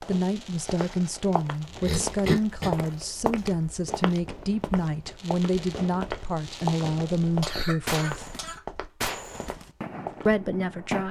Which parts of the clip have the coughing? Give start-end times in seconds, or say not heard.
1.8-2.7, 7.2-9.1.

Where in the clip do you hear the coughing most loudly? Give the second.
2 s.